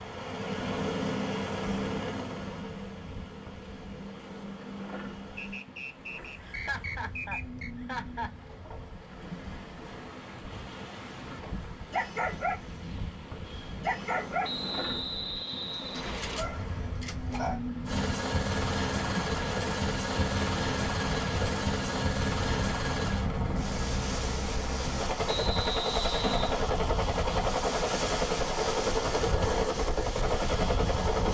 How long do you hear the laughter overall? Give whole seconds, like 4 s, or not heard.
2 s.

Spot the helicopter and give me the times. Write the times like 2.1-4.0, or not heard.
0.0-5.7, 17.9-31.3.